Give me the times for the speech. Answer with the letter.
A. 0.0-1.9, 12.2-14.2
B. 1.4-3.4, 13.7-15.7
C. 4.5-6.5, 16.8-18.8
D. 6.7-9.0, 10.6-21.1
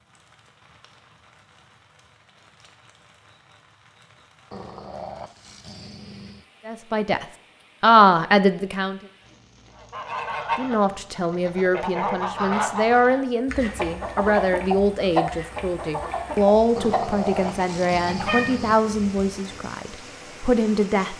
D.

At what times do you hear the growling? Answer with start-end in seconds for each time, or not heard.
4.5-6.5, 16.8-18.8.